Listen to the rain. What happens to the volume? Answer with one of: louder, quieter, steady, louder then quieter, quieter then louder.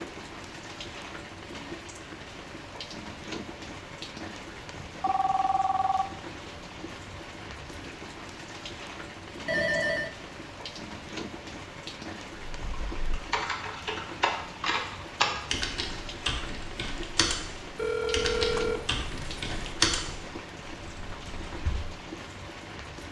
steady.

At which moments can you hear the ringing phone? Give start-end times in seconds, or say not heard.
5.0-6.0, 9.4-10.2, 17.8-19.8.